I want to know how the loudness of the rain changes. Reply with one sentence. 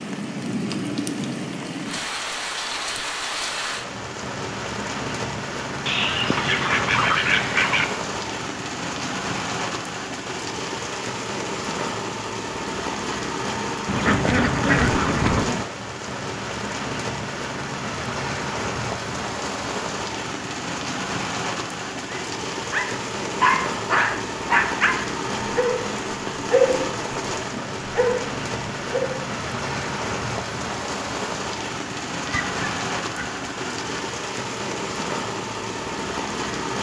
The volume of the rain stays about the same.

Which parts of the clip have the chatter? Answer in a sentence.
The chatter can't be heard in this clip.